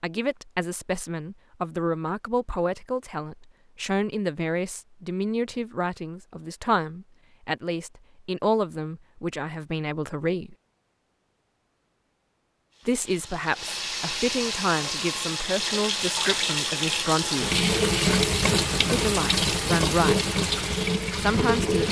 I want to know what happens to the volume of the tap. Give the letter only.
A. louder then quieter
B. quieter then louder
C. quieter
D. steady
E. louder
E.